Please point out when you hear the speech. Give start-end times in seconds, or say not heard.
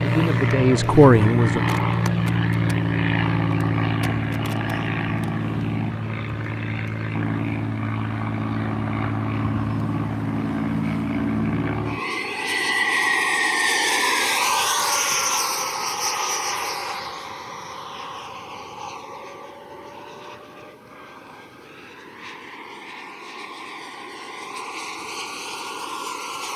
0.0-1.6.